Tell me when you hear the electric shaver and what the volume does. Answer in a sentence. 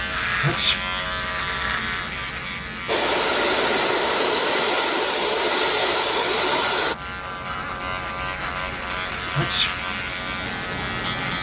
You can hear the electric shaver from 0.0 to 11.3 s, getting quieter then louder.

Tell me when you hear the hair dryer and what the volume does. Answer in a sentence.
The hair dryer can be heard from 2.9 to 7.0 s, at a steady volume.